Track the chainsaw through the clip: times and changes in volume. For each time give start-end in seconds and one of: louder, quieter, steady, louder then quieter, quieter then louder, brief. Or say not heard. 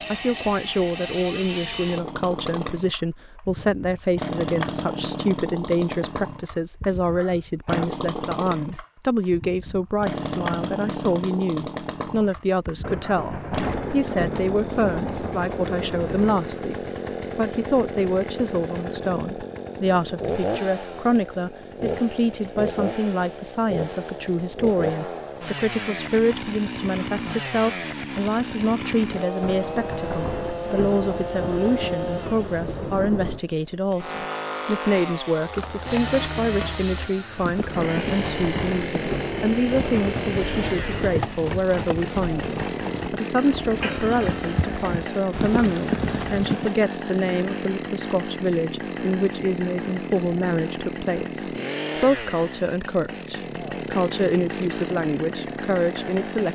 0.0-56.5 steady.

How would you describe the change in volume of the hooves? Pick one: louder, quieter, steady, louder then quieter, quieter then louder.
louder.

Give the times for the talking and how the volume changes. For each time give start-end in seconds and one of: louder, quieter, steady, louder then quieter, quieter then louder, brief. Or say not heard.
0.1-56.5 steady.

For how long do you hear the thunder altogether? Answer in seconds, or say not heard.
11 s.